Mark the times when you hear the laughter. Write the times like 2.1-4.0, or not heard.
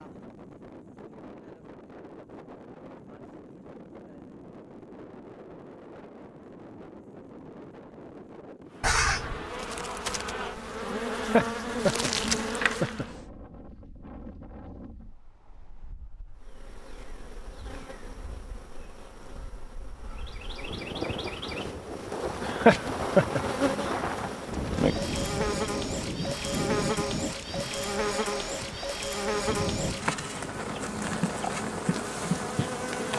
11.2-13.1, 22.4-23.9.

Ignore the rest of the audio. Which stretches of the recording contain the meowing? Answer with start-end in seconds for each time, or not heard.
8.8-9.4.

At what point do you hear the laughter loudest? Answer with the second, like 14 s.
23 s.